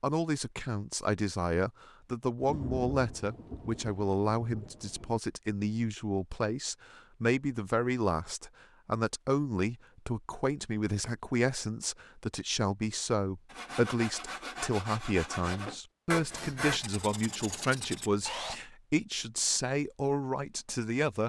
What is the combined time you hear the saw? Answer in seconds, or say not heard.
5 s.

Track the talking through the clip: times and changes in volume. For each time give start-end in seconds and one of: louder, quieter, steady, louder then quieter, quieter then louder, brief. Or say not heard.
0.0-21.2 steady.